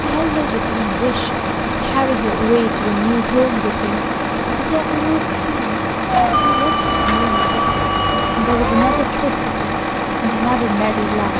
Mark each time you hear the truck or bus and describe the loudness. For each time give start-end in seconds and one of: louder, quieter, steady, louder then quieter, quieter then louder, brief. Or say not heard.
0.0-11.3 steady.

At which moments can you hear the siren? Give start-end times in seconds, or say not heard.
6.1-9.1.